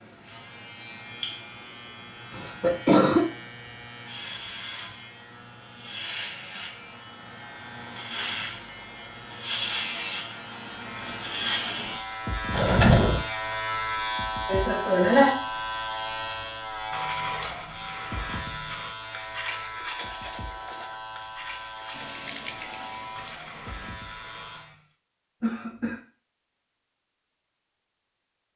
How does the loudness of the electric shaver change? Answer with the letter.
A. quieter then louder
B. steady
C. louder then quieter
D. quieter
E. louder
C.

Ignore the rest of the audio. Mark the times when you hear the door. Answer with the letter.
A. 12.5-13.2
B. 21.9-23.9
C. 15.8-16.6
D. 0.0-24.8
A.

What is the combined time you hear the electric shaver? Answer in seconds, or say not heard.
25 s.